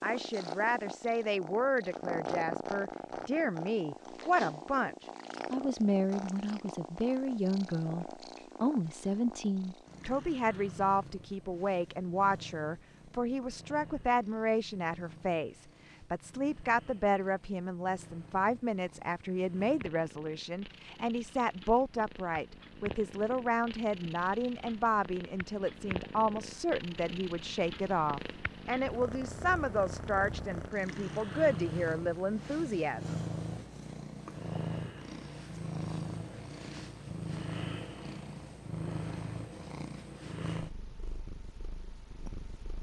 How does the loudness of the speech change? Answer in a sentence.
The loudness of the speech stays about the same.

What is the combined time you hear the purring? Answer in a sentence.
The purring can be heard for 43 seconds in total.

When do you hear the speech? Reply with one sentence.
You can hear the speech from 0.0 to 33.1 s.